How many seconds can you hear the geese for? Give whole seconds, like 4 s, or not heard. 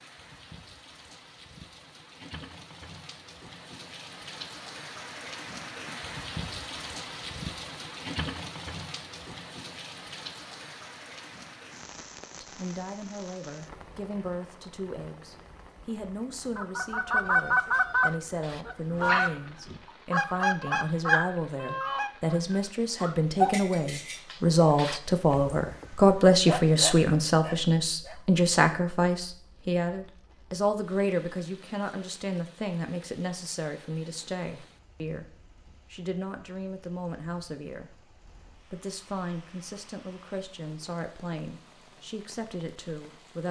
6 s.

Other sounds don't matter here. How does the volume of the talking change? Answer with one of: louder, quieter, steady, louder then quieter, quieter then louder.
louder then quieter.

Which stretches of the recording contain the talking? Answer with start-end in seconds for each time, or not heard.
12.4-43.4.